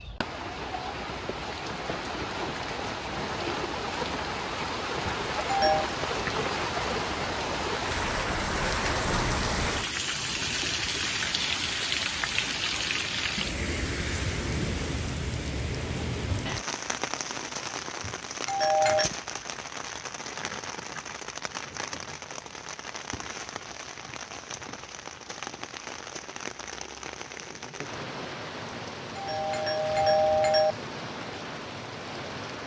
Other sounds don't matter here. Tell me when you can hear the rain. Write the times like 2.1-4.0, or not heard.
0.0-32.6.